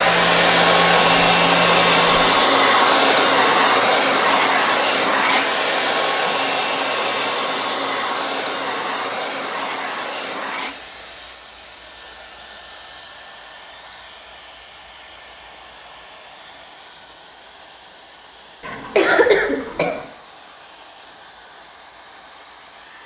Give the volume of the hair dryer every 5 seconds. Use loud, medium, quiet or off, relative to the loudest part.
loud, medium, quiet, quiet, quiet.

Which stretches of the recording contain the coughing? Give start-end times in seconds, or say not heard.
18.6-20.0.